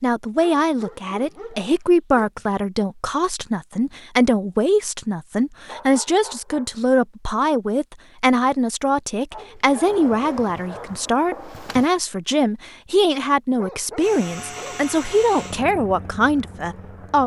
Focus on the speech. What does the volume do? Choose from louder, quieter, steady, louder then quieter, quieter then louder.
steady.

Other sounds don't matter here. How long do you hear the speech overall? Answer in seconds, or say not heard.
17 s.